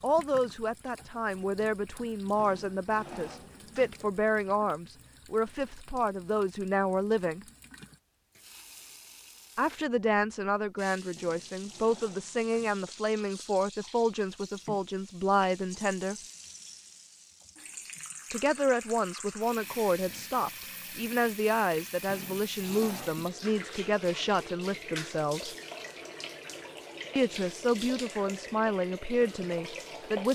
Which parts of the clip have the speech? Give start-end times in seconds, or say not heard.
0.0-7.5, 9.6-16.1, 18.3-25.6, 27.1-30.3.